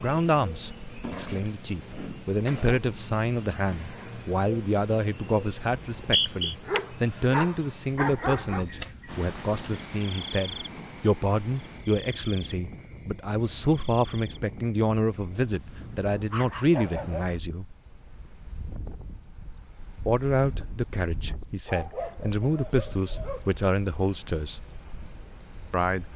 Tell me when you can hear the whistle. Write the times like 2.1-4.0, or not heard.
5.7-6.5.